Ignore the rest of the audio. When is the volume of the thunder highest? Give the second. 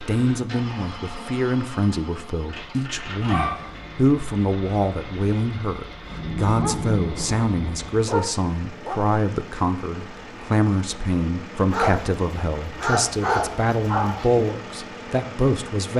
7 s.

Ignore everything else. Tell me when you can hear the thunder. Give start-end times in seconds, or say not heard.
6.0-8.1.